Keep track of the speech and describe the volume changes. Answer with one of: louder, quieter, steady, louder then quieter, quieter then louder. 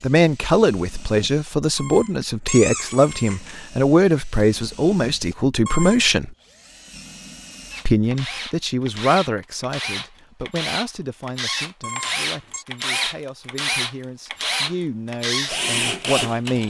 quieter then louder.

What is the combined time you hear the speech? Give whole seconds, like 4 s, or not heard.
15 s.